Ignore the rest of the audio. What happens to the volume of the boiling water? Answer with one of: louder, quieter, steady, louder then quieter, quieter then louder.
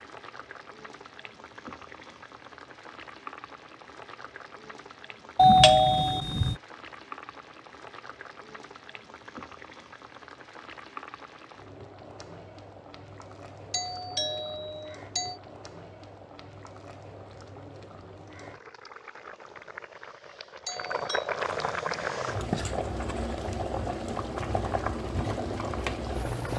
louder.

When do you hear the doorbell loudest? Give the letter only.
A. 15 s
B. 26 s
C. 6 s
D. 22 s
C.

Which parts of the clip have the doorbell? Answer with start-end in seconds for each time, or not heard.
5.3-6.5, 13.7-15.4, 20.6-21.3.